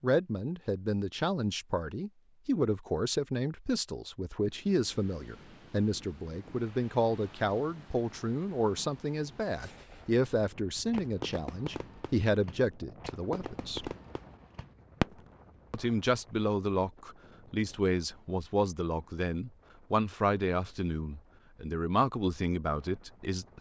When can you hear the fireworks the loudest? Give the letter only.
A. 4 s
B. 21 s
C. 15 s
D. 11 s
C.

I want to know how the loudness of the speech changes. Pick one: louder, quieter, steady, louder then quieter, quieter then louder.
steady.